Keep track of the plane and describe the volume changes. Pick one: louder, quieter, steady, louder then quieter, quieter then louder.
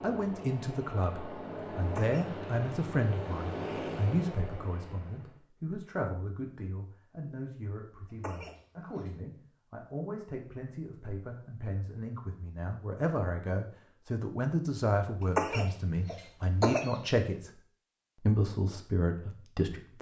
louder then quieter.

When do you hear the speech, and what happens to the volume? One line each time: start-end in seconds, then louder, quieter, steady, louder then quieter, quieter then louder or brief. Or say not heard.
0.0-17.5 quieter then louder
18.2-19.9 brief.